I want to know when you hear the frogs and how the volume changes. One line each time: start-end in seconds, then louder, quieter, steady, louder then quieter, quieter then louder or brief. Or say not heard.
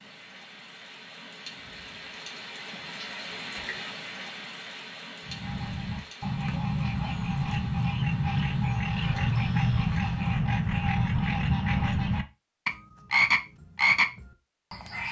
5.2-15.0 louder.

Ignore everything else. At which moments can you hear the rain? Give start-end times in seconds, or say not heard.
0.0-10.3.